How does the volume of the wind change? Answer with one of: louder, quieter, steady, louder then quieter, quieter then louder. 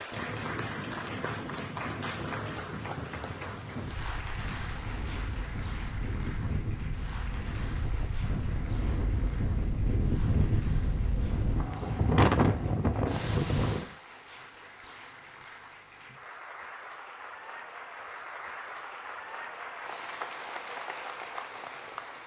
louder.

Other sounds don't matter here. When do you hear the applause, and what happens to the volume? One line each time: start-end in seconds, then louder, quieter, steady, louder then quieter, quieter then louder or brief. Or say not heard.
0.0-22.2 quieter then louder.